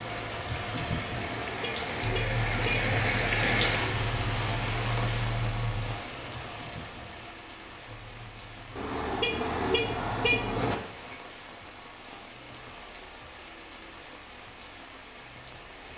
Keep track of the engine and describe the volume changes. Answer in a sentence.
The loudness of the engine goes down.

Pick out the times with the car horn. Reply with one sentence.
The car horn can be heard from 1.1 to 3.0 s and from 8.8 to 10.8 s.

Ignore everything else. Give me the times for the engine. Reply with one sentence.
The engine can be heard from 0.0 to 10.6 s.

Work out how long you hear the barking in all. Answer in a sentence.
You can't hear the barking here.